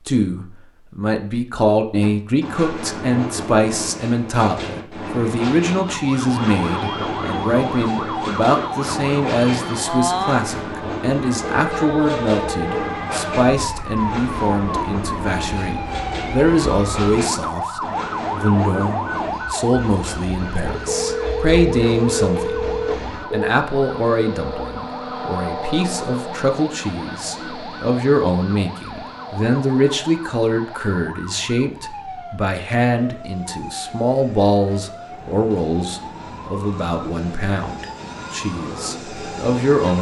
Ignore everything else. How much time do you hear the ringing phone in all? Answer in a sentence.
You can hear the ringing phone for 4 seconds altogether.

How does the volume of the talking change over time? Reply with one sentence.
The volume of the talking stays about the same.